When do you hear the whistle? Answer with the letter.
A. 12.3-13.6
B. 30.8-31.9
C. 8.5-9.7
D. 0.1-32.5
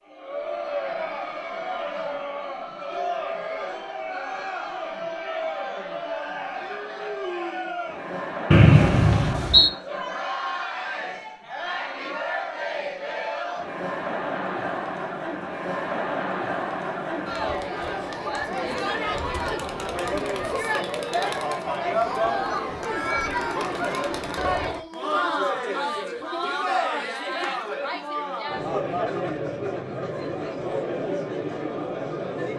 C.